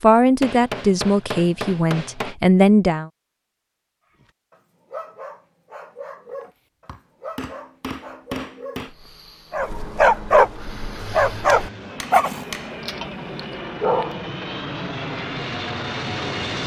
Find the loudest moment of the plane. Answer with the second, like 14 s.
16 s.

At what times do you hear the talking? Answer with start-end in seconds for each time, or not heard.
0.0-3.1.